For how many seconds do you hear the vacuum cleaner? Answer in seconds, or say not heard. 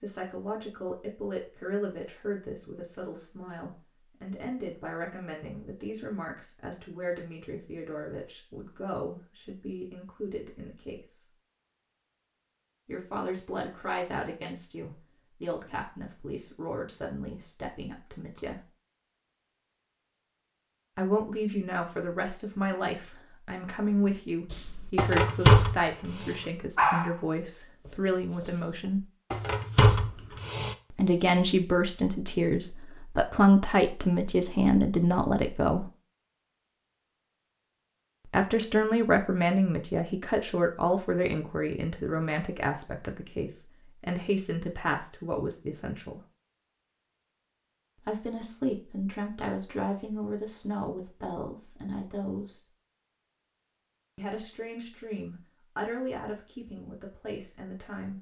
not heard.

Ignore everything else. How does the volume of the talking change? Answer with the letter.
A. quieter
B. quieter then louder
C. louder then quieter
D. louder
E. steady
C.